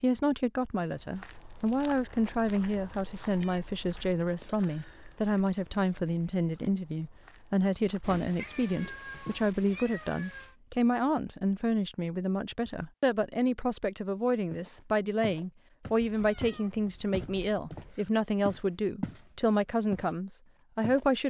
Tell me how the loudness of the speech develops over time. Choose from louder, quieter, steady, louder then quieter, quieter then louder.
steady.